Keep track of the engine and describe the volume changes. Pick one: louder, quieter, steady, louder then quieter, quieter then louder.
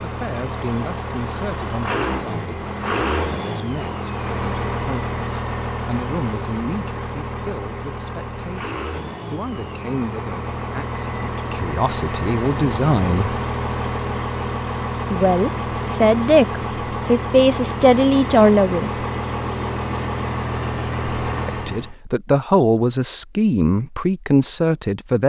steady.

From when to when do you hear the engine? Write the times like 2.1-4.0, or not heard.
0.0-21.9.